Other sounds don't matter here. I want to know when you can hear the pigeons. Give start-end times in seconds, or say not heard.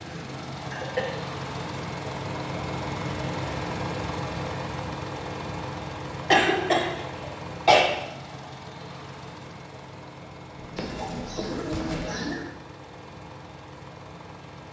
10.8-12.4.